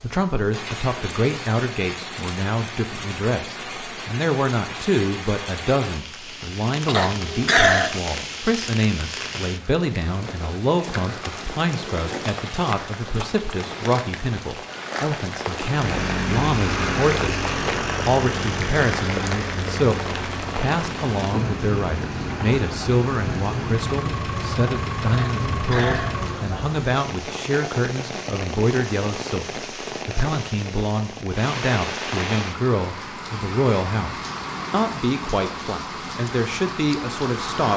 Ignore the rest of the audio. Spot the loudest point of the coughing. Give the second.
8 s.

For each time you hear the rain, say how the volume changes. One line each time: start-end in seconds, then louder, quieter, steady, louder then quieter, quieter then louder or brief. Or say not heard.
0.0-37.7 steady.